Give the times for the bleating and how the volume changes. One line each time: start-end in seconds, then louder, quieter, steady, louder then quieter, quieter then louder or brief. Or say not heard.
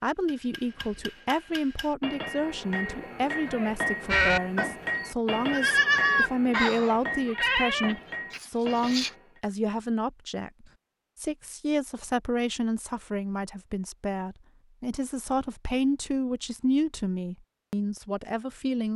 4.0-9.1 louder then quieter.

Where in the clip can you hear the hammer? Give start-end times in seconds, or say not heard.
0.2-9.4.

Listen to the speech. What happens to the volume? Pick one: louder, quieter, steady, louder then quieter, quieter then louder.
steady.